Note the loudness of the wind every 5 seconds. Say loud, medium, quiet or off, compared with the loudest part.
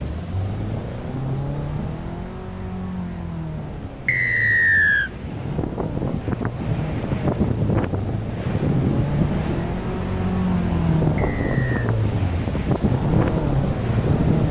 quiet, loud, loud.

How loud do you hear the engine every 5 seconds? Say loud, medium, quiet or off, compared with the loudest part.
medium, medium, loud.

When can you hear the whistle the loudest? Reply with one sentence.
The loudest moment of the whistle is at 5 seconds.